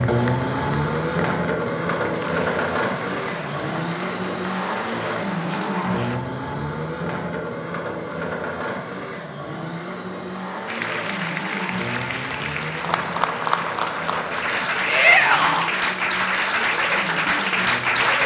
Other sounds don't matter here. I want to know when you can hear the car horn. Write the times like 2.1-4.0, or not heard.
not heard.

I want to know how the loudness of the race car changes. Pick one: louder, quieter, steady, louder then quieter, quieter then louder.
quieter.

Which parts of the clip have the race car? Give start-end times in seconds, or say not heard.
0.0-18.2.